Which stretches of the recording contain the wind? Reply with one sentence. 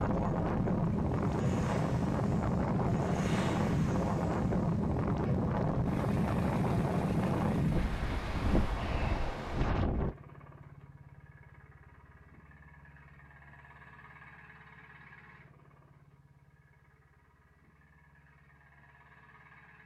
The wind can be heard from 0.0 to 10.2 s.